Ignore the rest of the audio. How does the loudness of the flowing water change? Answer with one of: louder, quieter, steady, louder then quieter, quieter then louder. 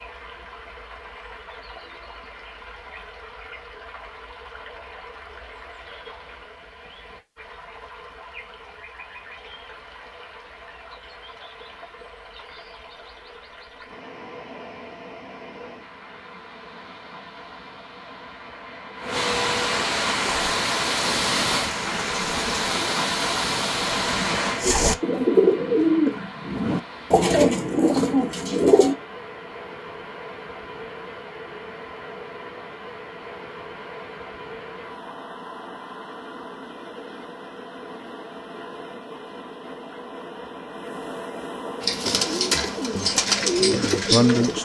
louder then quieter.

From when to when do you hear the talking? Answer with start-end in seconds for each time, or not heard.
42.5-44.6.